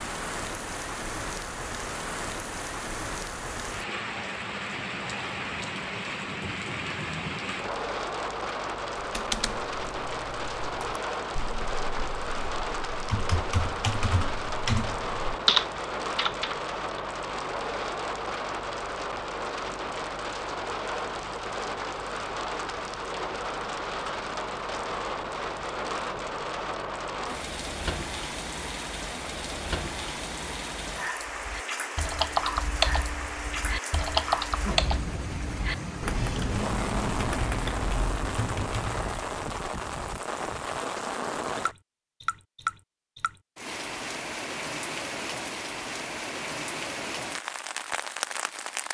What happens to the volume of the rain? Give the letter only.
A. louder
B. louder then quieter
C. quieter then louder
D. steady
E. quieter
D.